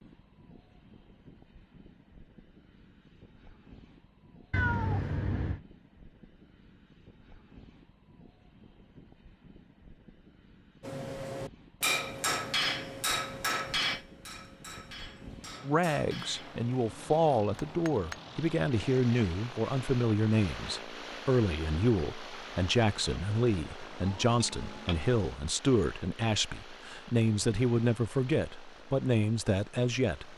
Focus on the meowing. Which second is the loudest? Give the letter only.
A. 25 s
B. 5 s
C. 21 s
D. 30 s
B.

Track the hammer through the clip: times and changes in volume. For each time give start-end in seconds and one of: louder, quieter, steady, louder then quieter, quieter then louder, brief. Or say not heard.
10.8-18.2 quieter.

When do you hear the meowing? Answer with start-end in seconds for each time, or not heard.
4.5-5.6, 23.8-25.1.